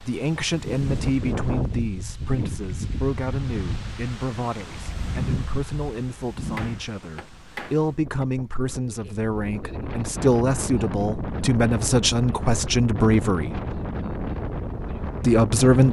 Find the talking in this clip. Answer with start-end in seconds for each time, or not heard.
0.0-13.6, 15.2-15.8.